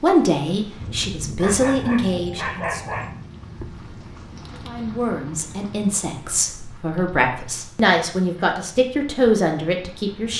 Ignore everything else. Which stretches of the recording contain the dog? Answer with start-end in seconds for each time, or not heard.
1.4-3.1.